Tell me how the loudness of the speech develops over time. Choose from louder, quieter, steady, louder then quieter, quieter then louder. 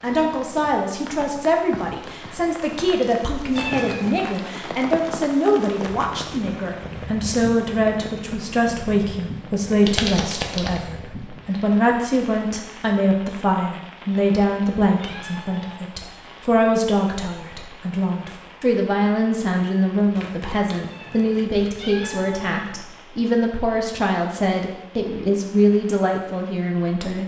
steady.